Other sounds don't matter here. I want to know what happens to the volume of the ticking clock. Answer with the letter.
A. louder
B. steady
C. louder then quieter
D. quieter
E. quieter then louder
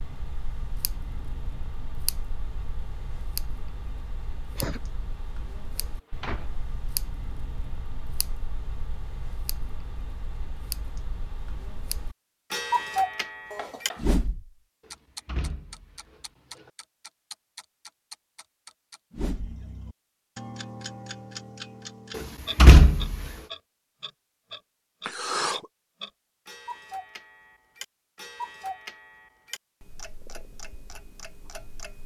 C.